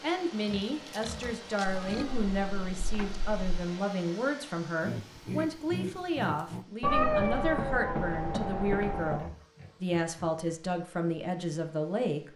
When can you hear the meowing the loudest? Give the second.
7 s.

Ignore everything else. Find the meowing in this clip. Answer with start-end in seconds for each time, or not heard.
1.6-3.6, 6.8-9.2.